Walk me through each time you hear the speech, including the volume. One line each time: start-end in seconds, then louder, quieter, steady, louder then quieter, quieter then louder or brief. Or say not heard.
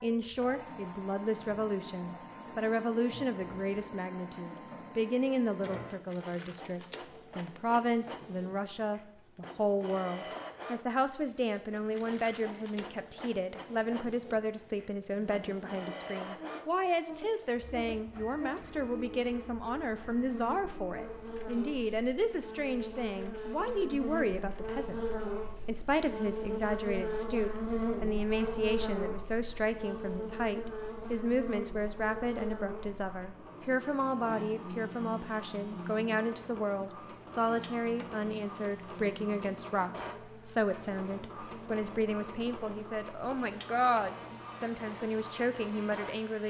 0.0-46.4 steady.